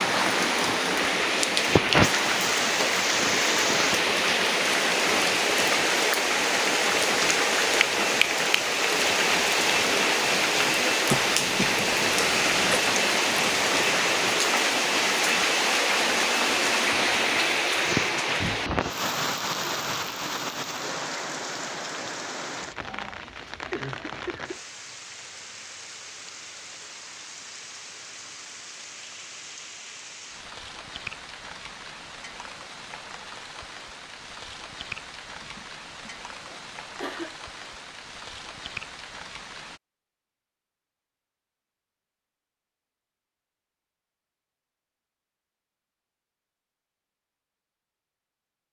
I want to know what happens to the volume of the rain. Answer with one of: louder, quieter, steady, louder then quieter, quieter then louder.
quieter.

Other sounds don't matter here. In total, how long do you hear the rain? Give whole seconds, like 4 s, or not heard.
40 s.